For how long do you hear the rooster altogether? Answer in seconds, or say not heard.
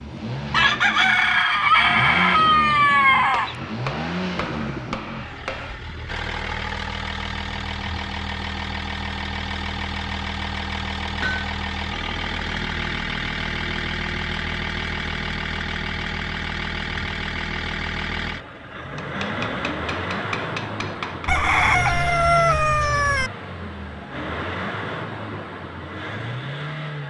5 s.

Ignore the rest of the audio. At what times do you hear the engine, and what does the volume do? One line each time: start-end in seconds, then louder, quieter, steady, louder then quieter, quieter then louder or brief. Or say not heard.
0.0-27.0 steady.